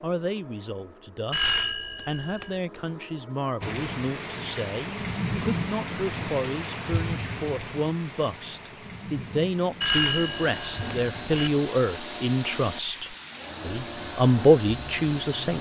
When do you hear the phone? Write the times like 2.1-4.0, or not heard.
1.3-2.5, 9.8-11.5.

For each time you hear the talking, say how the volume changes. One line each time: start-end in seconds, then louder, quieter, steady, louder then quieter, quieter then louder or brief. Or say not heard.
0.0-15.5 louder.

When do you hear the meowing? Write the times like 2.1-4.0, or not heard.
not heard.